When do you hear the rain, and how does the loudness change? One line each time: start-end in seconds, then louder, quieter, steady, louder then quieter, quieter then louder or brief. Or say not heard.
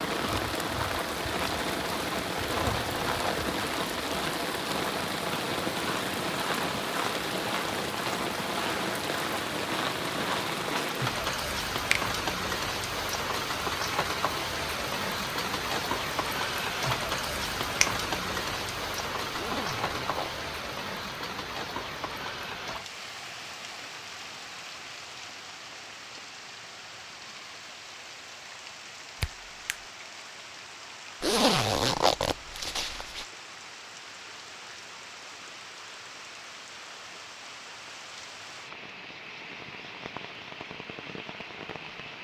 0.0-42.1 quieter.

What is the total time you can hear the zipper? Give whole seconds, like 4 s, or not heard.
4 s.